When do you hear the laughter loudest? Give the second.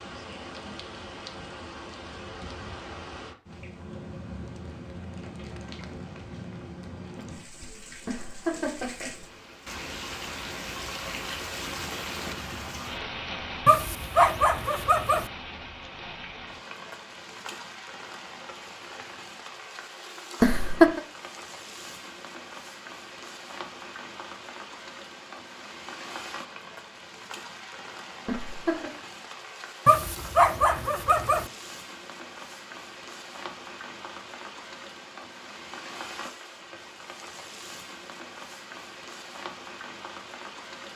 21 s.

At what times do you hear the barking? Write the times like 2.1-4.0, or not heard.
13.7-15.2, 29.9-31.4.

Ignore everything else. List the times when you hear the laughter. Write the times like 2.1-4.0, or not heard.
8.1-9.1, 20.4-21.0, 28.2-28.9.